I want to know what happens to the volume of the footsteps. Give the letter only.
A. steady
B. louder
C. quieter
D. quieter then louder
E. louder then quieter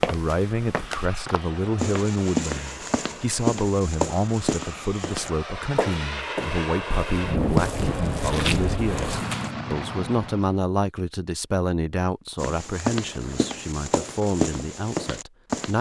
A.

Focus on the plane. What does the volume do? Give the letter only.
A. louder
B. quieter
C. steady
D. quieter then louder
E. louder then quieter
A.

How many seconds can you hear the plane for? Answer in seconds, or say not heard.
10 s.